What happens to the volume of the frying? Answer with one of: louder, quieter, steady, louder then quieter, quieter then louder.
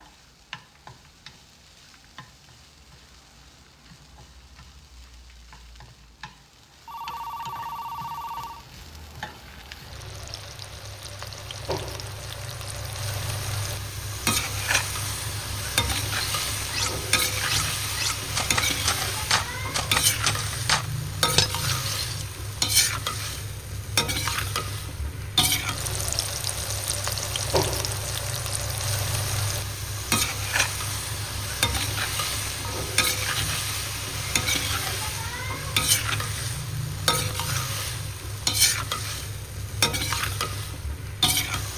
louder.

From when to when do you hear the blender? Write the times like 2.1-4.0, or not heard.
not heard.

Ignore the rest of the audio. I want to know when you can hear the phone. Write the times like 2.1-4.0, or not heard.
6.8-8.7.